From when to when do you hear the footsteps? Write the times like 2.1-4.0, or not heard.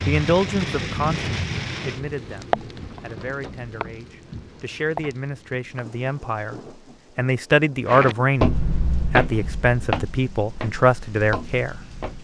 7.8-12.1.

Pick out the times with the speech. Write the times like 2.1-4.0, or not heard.
0.0-11.8.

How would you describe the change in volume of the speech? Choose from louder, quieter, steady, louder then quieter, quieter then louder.
quieter then louder.